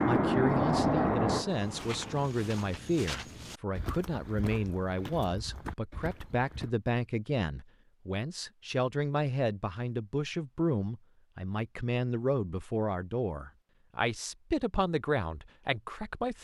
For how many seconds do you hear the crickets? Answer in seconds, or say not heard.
not heard.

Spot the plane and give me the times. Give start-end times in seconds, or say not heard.
0.0-2.3.